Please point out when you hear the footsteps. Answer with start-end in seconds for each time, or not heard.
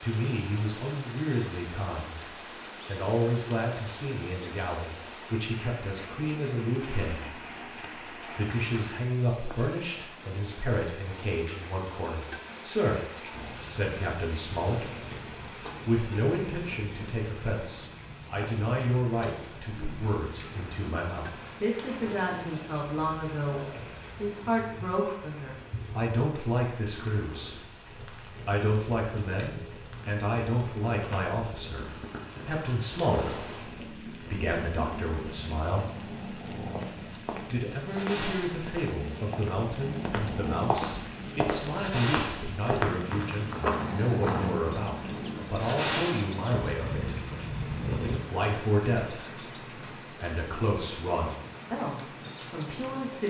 36.8-44.5.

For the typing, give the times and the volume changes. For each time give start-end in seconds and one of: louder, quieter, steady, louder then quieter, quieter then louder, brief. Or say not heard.
not heard.